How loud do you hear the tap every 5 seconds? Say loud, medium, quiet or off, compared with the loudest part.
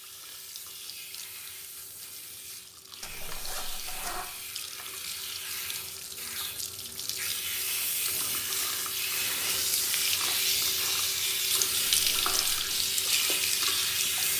quiet, medium, loud.